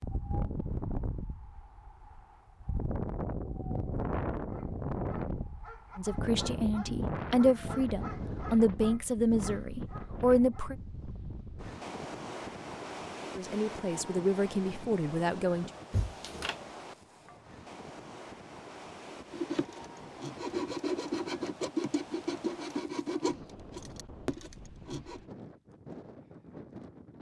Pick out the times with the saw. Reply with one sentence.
You can hear the saw from 19.3 to 25.2 s.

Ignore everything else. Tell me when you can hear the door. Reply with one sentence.
You can hear the door from 15.9 to 16.6 s.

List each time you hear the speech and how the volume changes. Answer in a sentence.
You can hear the speech from 6.0 to 10.8 s, getting louder; and briefly from 13.3 to 15.7 s.